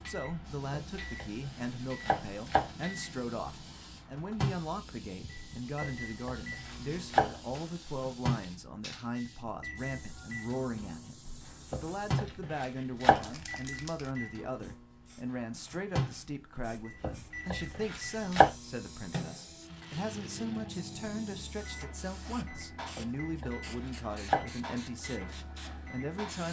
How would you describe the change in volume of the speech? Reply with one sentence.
The volume of the speech stays about the same.